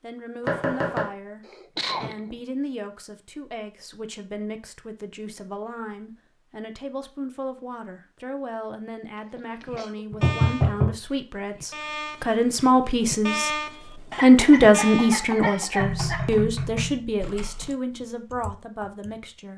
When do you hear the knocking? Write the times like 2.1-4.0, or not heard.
0.5-1.1, 10.1-10.9, 15.8-17.2.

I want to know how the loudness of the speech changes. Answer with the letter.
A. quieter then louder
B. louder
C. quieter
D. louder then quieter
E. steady
D.